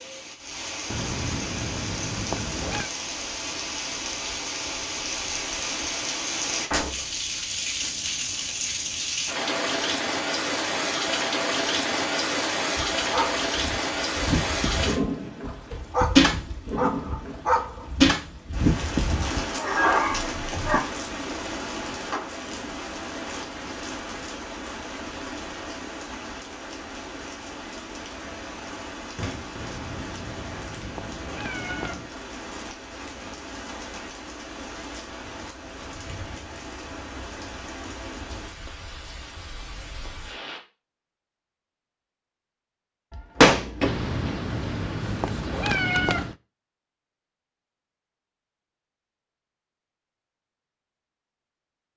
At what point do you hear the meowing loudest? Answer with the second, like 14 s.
46 s.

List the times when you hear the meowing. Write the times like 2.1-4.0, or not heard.
0.9-2.9, 29.6-32.1, 43.8-46.4.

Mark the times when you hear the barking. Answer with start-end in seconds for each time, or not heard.
12.8-20.8.